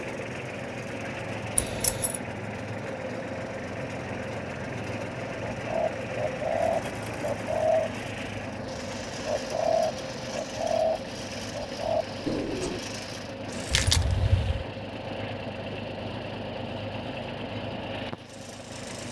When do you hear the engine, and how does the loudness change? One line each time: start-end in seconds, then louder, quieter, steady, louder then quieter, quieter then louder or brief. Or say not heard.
0.0-19.0 steady.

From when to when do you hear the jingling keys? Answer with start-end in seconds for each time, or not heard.
1.6-2.2, 13.7-14.7.